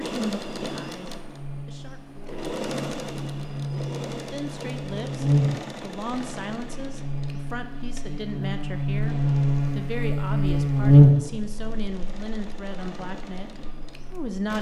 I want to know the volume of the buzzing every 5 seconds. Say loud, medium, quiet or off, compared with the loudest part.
quiet, medium, loud.